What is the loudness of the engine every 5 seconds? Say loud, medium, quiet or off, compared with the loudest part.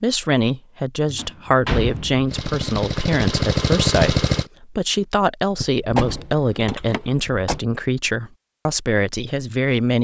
loud, off.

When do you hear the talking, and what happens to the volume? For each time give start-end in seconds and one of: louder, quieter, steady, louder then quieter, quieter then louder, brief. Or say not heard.
0.0-9.9 steady.